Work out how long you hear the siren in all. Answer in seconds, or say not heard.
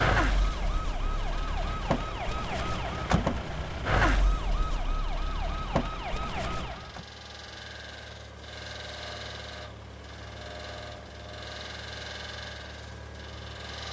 7 s.